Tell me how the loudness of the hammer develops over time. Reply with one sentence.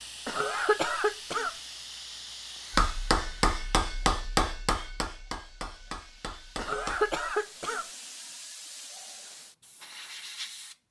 The loudness of the hammer goes down.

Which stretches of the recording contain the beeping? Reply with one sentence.
The beeping can't be heard in this clip.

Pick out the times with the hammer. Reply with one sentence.
You can hear the hammer from 2.7 to 7.2 s.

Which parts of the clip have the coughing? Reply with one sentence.
You can hear the coughing from 0.2 to 1.6 s and from 6.5 to 7.8 s.